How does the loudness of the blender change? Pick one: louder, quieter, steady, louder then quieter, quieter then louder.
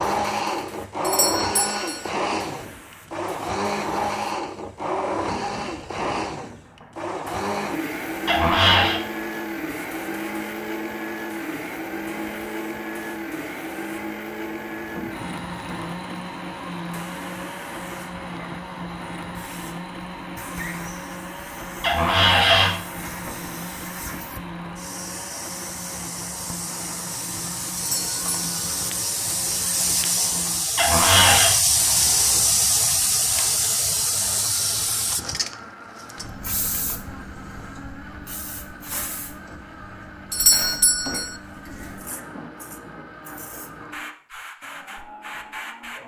quieter.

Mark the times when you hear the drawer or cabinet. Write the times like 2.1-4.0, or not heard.
8.2-9.0, 21.8-22.8, 30.8-31.6.